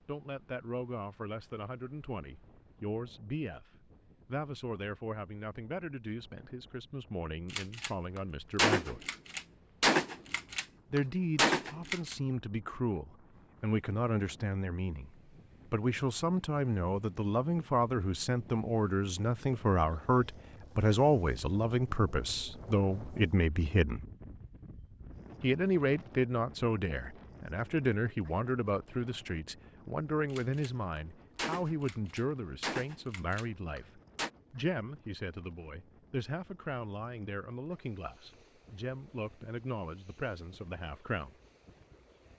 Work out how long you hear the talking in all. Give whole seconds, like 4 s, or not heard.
38 s.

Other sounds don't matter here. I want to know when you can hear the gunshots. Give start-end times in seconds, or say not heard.
7.5-12.2, 30.3-34.3.